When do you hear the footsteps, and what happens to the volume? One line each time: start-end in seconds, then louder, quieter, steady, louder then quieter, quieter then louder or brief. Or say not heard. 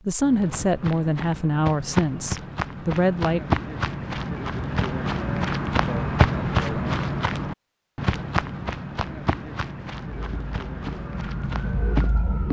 0.2-12.2 louder then quieter.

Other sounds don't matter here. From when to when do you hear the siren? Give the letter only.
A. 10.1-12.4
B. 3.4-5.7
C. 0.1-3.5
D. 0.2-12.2
A.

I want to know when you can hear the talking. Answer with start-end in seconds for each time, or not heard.
0.1-3.5.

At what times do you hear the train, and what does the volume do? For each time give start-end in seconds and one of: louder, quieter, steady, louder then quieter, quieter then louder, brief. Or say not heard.
not heard.